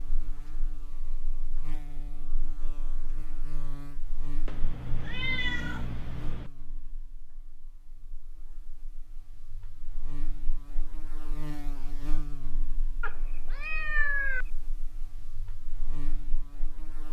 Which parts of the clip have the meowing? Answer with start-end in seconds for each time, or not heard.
4.5-6.5, 13.0-14.4.